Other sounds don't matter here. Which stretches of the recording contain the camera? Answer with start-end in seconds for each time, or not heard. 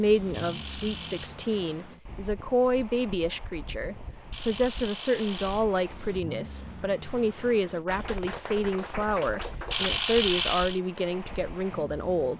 0.3-1.3, 4.3-5.7, 9.7-10.8.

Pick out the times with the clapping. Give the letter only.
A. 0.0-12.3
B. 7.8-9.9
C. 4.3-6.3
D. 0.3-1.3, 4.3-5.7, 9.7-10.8
B.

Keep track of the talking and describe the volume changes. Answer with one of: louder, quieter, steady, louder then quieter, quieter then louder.
steady.